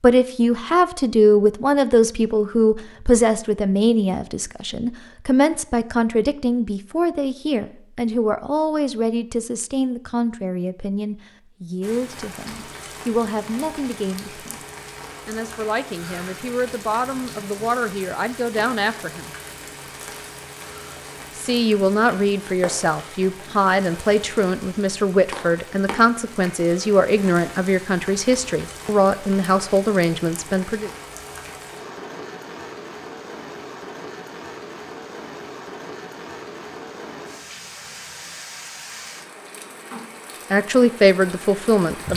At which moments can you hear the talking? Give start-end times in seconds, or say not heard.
0.0-14.6, 15.2-19.3, 21.4-30.9, 40.5-42.1.